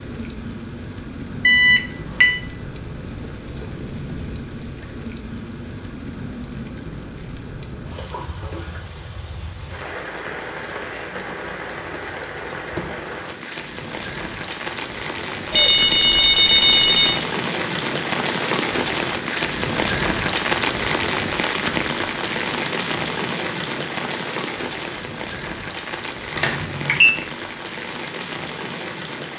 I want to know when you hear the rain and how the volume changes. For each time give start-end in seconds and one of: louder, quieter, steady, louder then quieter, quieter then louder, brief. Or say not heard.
0.0-29.3 louder then quieter.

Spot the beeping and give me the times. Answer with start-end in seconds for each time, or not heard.
1.4-2.5, 15.5-17.2, 26.4-27.1.